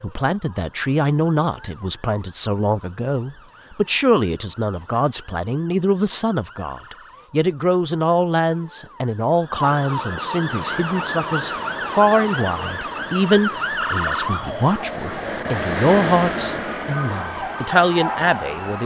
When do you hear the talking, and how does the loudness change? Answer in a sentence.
The talking can be heard from 0.0 to 18.8 s, at a steady volume.